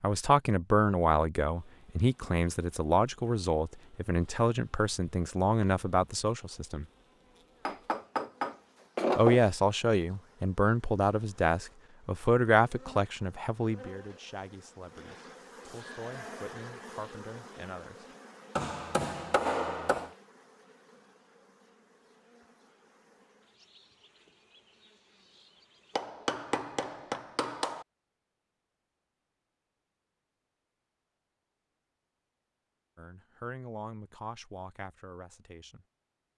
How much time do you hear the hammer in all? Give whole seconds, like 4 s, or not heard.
5 s.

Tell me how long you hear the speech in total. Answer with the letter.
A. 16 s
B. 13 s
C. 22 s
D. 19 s
D.